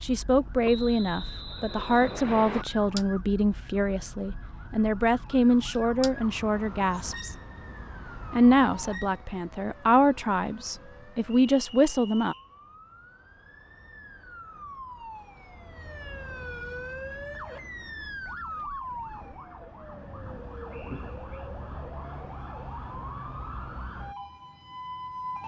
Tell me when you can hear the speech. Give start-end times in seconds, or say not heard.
0.0-7.3, 8.3-12.3.